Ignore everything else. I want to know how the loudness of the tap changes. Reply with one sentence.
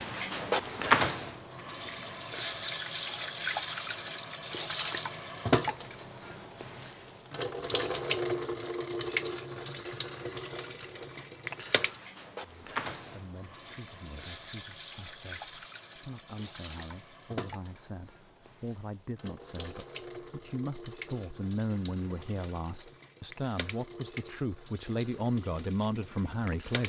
The loudness of the tap goes down.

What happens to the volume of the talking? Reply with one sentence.
The loudness of the talking goes up.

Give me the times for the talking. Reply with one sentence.
You can hear the talking from 12.4 to 26.8 s.